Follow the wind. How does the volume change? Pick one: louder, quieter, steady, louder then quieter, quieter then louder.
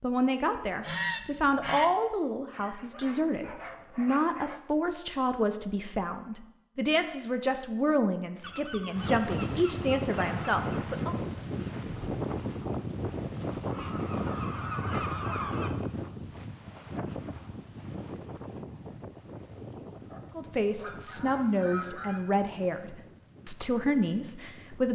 quieter.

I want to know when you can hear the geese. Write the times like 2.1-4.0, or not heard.
0.8-1.9, 8.4-10.8, 13.7-15.7, 20.8-22.4.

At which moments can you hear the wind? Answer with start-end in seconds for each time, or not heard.
8.9-24.9.